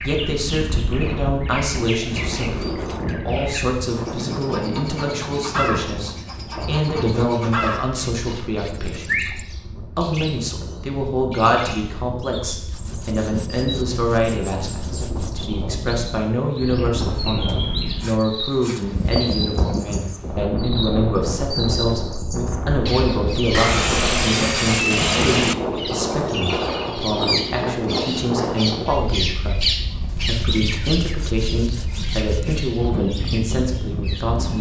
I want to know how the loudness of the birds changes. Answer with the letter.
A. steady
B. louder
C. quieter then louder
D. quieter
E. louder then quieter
A.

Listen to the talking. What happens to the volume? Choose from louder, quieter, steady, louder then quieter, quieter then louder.
steady.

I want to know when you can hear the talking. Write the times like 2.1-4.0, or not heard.
0.0-34.5.